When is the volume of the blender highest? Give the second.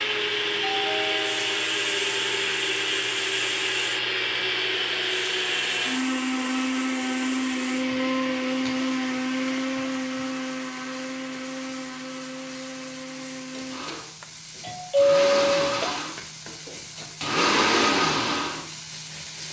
18 s.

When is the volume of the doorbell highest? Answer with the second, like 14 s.
15 s.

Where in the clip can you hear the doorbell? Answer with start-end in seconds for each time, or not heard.
0.7-1.6, 14.2-16.0.